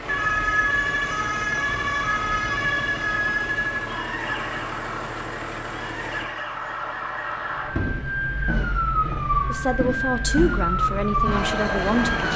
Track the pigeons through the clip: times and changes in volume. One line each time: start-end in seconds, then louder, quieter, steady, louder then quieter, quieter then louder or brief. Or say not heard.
not heard.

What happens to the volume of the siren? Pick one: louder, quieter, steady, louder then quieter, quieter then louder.
quieter then louder.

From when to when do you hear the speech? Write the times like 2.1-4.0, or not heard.
9.5-12.3.